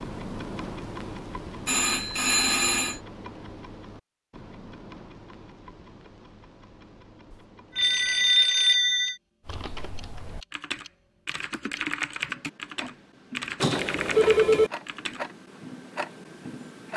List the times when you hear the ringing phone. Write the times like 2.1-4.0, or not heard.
1.6-3.0, 7.3-9.2, 13.6-14.7.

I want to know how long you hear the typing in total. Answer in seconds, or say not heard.
6 s.